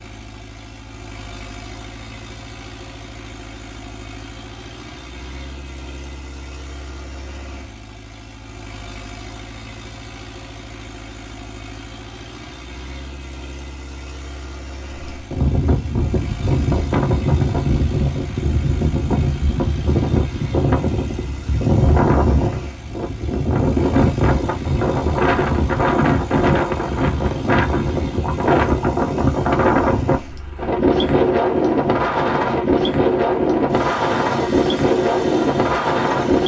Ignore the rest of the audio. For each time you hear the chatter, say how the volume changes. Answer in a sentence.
You can't hear the chatter here.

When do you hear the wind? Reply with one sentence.
The wind can be heard from 14.9 to 36.4 s.